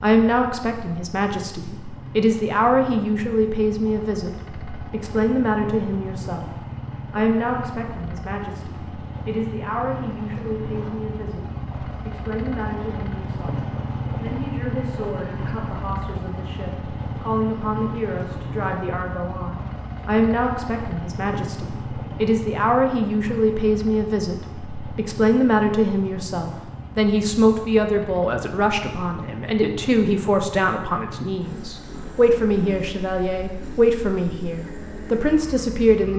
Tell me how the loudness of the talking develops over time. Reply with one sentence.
The loudness of the talking goes down, then up.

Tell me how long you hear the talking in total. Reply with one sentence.
You can hear the talking for 35 seconds altogether.